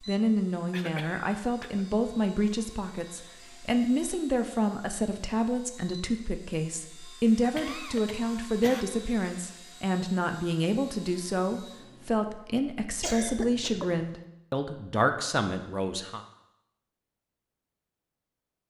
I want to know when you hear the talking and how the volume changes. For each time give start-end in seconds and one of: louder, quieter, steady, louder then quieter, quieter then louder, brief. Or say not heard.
0.0-16.2 steady.